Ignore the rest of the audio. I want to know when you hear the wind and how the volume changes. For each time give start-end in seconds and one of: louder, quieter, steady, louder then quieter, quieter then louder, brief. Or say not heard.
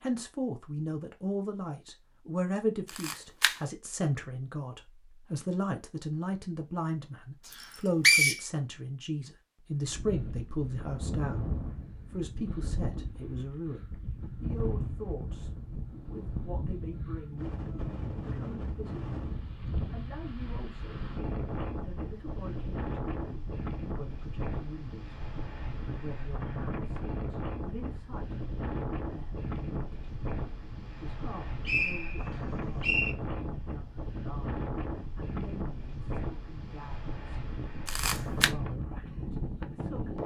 9.8-40.2 steady.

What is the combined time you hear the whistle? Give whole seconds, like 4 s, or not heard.
2 s.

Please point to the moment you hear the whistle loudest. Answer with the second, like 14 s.
8 s.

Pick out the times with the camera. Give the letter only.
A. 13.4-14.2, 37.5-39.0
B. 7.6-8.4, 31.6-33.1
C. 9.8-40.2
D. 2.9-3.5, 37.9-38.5
D.